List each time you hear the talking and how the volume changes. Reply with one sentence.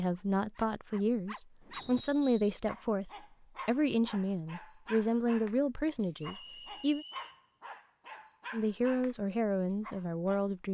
The talking can be heard from 0.0 to 7.0 s, at a steady volume; and briefly from 8.5 to 10.7 s.